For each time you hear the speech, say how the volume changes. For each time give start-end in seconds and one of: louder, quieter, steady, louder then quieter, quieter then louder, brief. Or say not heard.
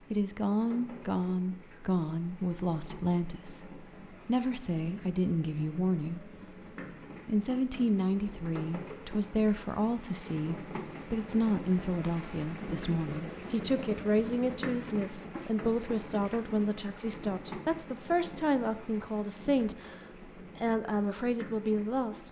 0.1-6.3 steady
7.2-22.2 steady.